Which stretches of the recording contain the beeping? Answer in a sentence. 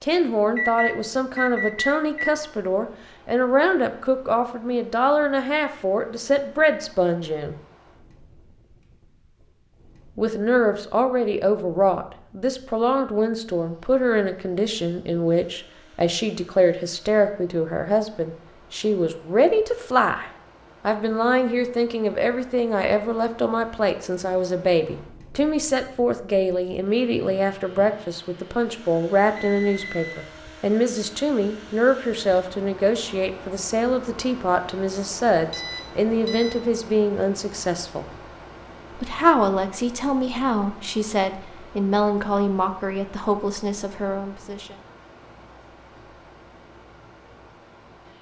You can hear the beeping from 0.6 to 2.4 s, from 29.4 to 30.2 s and from 35.5 to 36.5 s.